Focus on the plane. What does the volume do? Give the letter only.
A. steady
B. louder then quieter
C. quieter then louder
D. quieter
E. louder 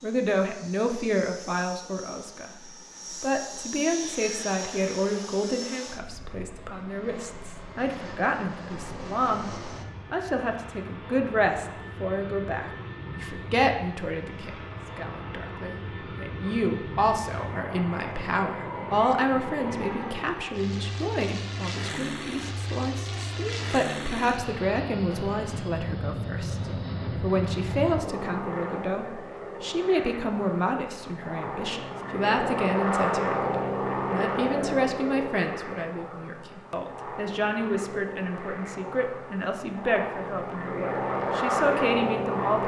E.